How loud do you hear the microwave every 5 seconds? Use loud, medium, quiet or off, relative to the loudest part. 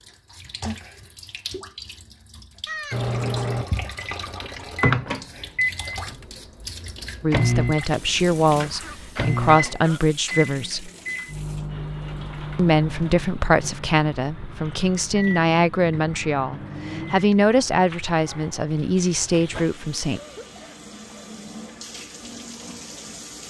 loud, loud, medium, medium, off.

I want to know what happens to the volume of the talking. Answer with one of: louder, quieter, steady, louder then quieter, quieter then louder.
steady.